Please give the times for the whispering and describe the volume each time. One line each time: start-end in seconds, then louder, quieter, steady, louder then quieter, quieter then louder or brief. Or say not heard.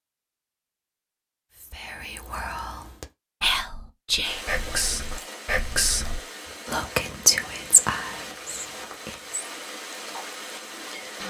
1.6-9.4 louder.